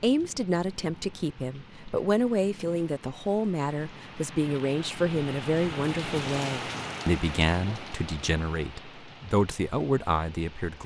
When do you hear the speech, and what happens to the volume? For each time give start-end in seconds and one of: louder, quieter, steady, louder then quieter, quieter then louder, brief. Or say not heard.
0.0-10.8 steady.